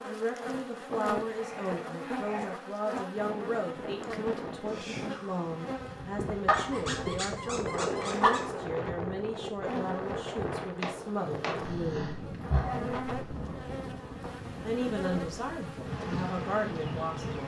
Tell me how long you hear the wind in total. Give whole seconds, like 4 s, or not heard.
14 s.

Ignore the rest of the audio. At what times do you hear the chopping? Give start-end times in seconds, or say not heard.
10.2-11.7.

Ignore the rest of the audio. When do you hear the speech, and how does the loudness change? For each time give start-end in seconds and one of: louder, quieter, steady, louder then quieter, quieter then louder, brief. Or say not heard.
0.0-12.2 steady
14.6-17.4 brief.